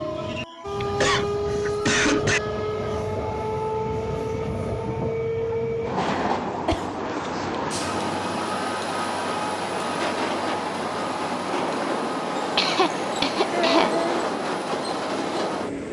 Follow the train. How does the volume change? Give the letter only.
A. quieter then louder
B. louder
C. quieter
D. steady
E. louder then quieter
D.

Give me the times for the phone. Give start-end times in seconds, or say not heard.
not heard.